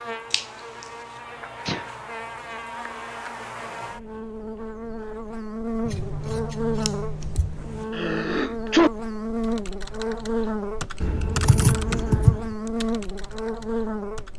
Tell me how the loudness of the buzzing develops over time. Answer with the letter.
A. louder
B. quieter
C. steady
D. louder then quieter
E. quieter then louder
A.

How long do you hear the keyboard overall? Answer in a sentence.
The keyboard can be heard for 4 seconds in total.